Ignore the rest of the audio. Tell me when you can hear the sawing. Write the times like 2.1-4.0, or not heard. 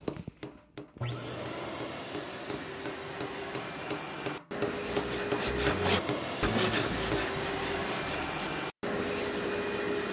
4.8-8.6.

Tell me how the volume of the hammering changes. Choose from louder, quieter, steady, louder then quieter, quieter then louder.
louder.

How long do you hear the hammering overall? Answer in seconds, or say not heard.
7 s.